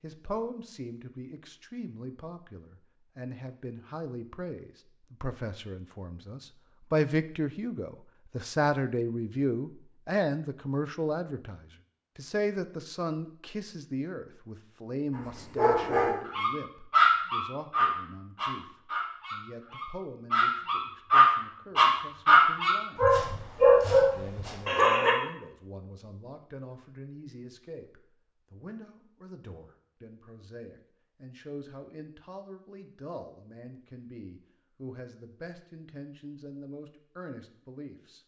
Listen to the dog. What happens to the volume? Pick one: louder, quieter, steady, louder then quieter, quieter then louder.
quieter then louder.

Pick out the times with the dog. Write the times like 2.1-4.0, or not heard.
15.6-25.1.